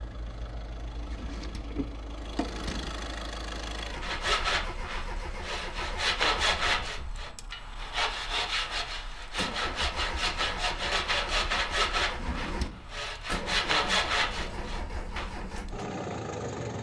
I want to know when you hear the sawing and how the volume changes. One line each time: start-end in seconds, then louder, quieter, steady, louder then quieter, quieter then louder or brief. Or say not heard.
4.0-15.3 steady.